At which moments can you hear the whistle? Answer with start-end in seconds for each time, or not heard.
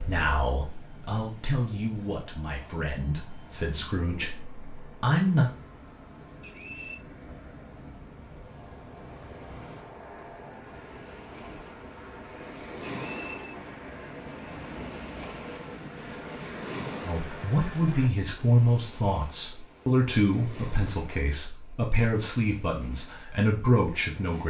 6.4-7.0, 12.8-13.6.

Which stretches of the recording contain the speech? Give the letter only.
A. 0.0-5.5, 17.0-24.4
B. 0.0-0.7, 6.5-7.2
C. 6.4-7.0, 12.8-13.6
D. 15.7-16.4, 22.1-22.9
A.